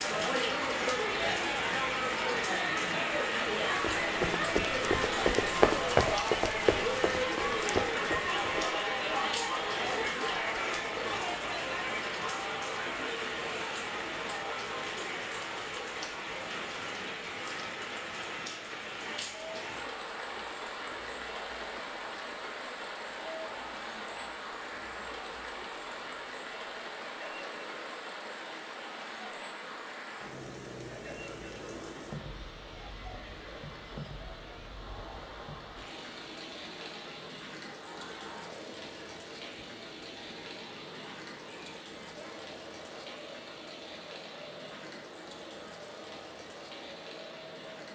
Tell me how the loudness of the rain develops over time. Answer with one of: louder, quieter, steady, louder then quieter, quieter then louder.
quieter.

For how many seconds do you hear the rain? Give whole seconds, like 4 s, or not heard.
48 s.